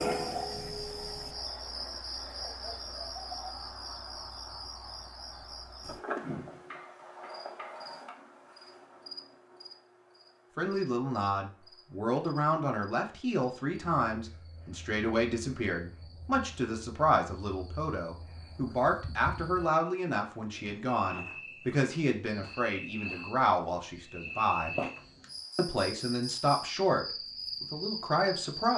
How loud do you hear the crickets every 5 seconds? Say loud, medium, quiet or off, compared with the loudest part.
loud, medium, quiet, quiet, loud, loud.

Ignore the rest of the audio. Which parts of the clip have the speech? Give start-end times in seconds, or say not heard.
10.6-24.8, 25.6-28.7.